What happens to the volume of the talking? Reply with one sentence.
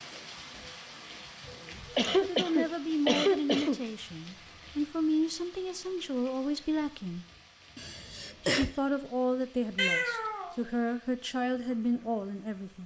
The volume of the talking stays about the same.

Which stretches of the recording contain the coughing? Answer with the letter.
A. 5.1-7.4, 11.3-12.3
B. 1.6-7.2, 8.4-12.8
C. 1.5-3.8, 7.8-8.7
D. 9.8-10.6
C.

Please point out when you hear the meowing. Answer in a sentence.
You can hear the meowing from 9.8 to 10.6 s.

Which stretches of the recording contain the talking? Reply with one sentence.
The talking can be heard from 1.6 to 7.2 s and from 8.4 to 12.8 s.